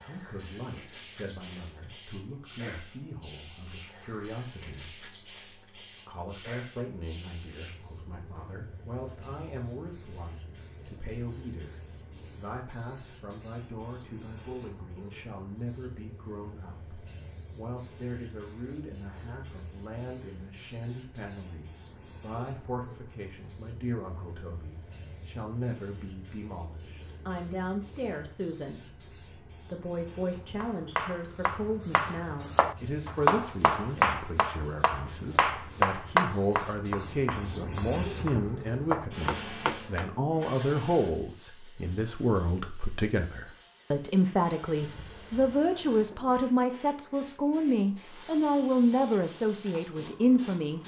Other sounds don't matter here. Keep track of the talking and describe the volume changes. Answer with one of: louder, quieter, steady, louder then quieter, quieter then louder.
louder.